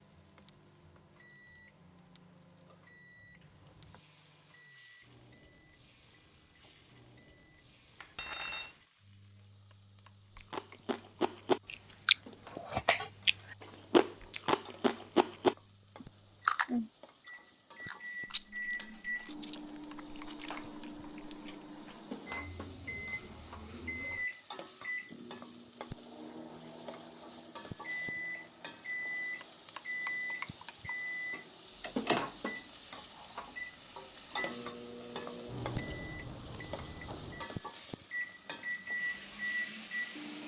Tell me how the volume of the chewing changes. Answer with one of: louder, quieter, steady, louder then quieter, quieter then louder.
quieter.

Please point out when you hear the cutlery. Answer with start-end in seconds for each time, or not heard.
8.0-8.8.